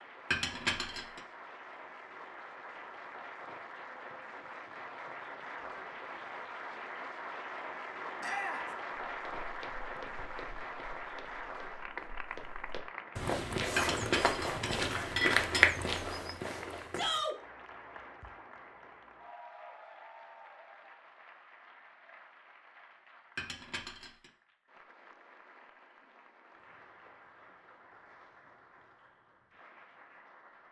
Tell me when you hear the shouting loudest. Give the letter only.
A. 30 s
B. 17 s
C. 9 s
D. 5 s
B.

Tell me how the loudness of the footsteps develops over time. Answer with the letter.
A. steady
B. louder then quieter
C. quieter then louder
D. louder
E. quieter
D.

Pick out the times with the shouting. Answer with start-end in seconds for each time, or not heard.
8.2-8.7, 16.9-17.4.